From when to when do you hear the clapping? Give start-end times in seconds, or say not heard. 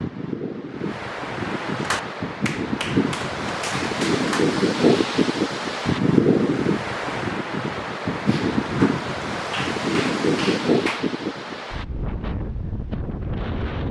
1.8-4.5, 8.2-11.1.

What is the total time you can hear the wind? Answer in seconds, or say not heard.
14 s.